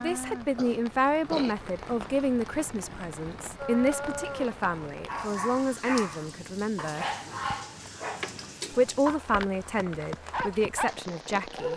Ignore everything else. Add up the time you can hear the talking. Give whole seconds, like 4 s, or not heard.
10 s.